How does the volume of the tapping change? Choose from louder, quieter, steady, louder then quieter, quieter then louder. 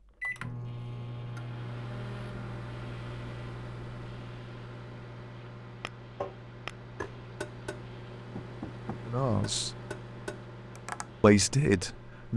quieter then louder.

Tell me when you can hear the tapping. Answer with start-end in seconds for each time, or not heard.
5.8-11.2.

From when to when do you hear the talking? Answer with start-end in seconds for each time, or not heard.
9.1-9.7, 11.2-12.3.